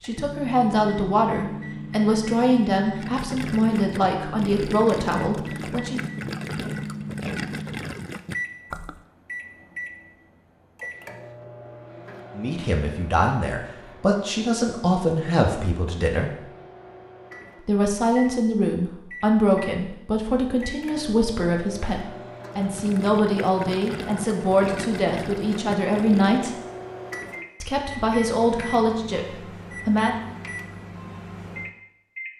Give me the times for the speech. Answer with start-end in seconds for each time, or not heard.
0.0-6.0, 12.3-16.4, 17.6-26.5, 27.6-30.2.